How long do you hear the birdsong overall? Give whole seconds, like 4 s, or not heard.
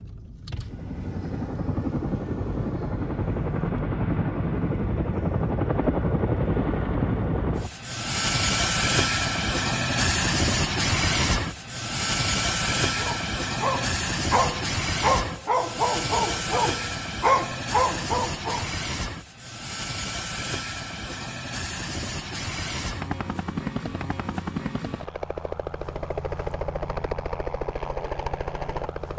not heard.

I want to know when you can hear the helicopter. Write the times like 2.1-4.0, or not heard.
0.0-29.1.